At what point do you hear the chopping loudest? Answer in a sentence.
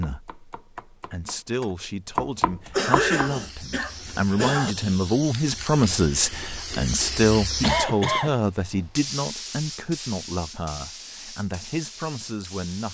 The volume of the chopping peaks at 2 seconds.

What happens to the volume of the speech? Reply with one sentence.
The loudness of the speech goes up, then down.